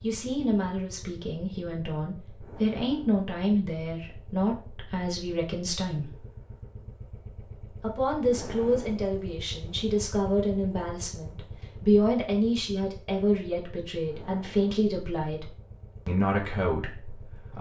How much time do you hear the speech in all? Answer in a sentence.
The speech can be heard for 16 seconds in total.